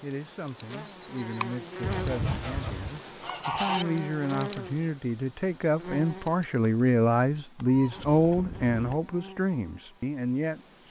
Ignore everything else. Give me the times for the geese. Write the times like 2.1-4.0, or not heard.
1.8-3.9, 7.5-9.0.